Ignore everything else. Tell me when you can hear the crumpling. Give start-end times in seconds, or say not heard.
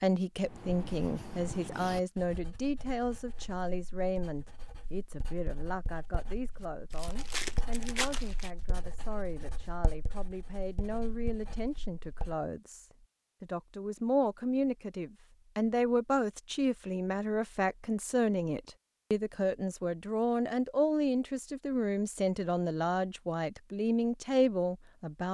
6.9-8.5.